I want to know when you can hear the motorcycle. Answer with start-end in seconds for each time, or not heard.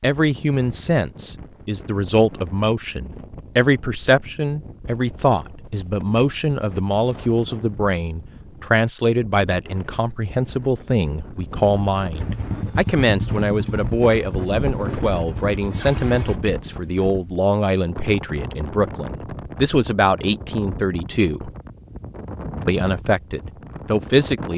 12.2-16.4.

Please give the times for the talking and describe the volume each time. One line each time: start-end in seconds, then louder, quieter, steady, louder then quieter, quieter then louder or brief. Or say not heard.
0.0-21.5 steady
22.6-24.5 brief.